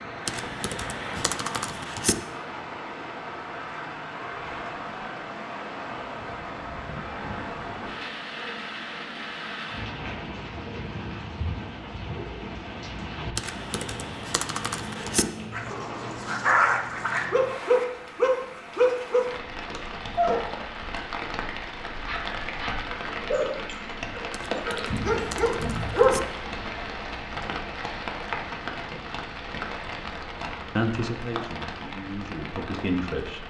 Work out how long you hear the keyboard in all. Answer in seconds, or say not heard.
6 s.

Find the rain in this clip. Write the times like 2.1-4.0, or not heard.
0.0-33.4.